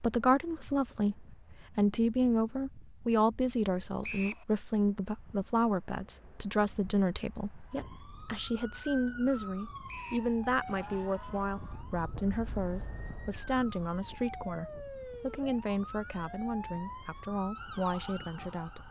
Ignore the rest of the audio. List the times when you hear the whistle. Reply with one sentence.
The whistle can be heard from 4.0 to 4.5 s and from 9.8 to 10.3 s.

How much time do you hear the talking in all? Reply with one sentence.
You can hear the talking for 19 seconds altogether.